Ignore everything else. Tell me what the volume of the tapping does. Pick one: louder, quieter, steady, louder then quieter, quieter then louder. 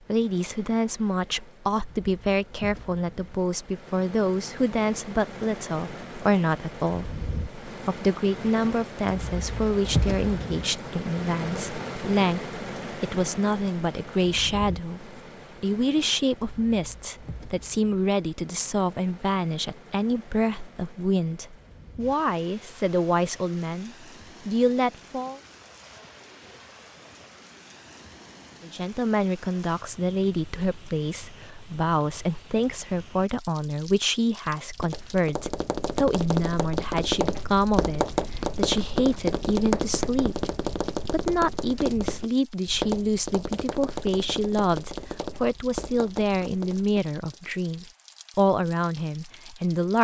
quieter.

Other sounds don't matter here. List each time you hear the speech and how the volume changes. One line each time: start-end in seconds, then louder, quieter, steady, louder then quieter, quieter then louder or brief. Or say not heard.
0.1-25.4 steady
28.6-49.9 steady.